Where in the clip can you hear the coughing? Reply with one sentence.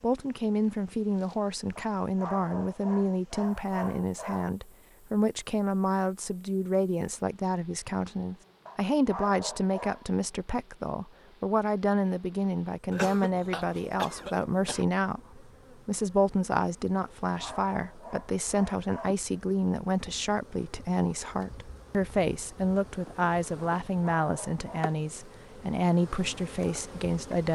You can hear the coughing from 12.9 to 14.8 s.